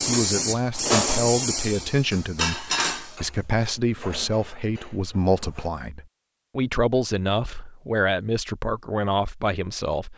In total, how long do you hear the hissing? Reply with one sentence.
The hissing can be heard for 3 seconds in total.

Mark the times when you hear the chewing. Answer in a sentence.
The chewing can't be heard in this clip.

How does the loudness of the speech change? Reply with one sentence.
The volume of the speech stays about the same.